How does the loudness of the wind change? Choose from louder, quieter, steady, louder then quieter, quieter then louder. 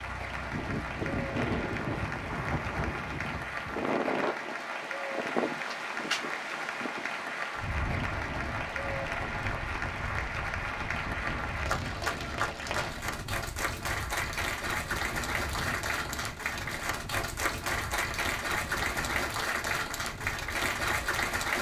quieter.